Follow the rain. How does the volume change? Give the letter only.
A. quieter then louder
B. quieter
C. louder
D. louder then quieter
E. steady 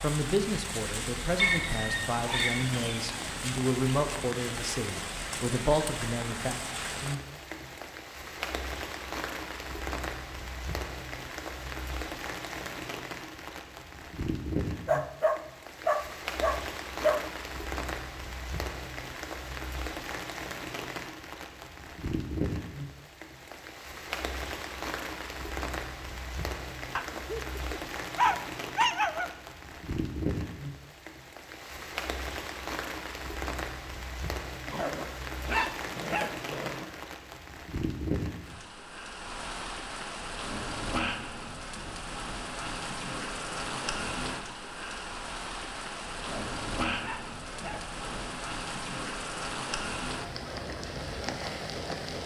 E.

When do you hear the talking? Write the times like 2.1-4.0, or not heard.
0.0-6.5.